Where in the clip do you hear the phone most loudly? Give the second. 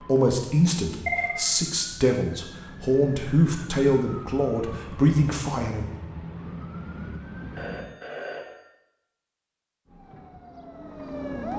1 s.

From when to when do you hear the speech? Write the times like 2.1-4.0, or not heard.
0.1-5.8.